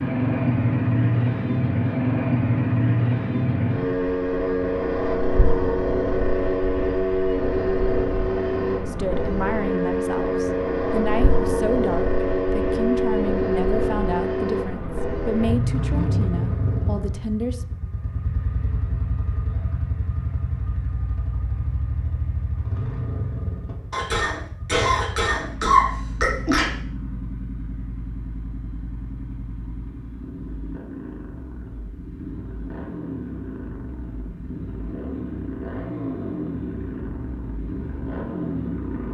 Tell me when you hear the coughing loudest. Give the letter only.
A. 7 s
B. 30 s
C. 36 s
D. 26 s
D.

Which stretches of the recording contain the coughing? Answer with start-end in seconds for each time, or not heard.
23.9-26.7.